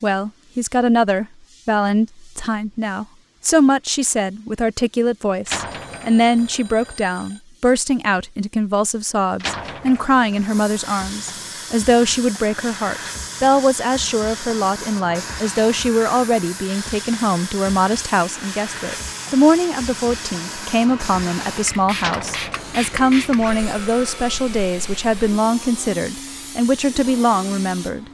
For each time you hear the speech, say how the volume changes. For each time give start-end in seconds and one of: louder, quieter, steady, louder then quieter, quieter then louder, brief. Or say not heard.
0.0-28.0 steady.